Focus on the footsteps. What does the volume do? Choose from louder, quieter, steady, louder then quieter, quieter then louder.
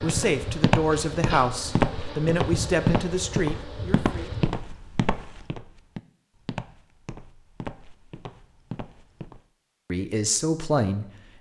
quieter.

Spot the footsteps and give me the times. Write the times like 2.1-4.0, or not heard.
0.0-9.4.